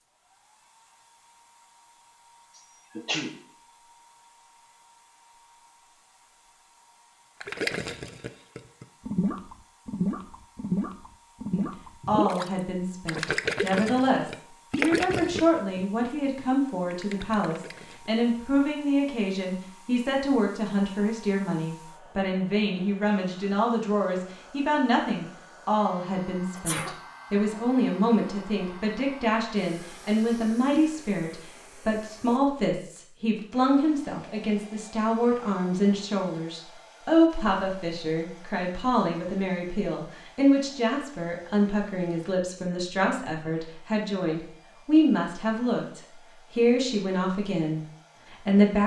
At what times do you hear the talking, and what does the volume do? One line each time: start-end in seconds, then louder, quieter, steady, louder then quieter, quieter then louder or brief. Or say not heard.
11.6-48.8 steady.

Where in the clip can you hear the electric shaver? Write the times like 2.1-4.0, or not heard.
not heard.